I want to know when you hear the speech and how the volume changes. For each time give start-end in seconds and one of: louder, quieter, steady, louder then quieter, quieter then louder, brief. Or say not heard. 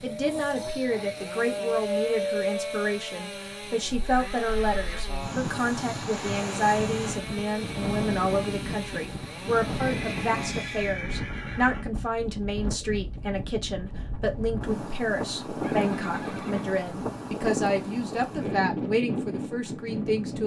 0.0-20.4 steady.